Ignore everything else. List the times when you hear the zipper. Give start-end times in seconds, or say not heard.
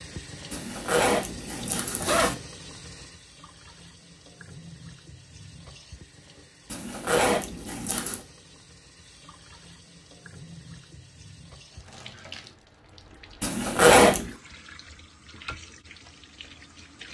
0.5-2.4, 6.7-8.2, 13.4-14.3.